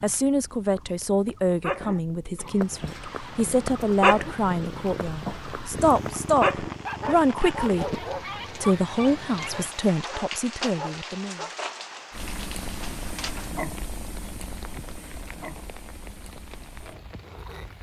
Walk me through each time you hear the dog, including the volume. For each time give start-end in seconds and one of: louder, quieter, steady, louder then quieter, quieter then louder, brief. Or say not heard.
0.7-11.5 louder then quieter.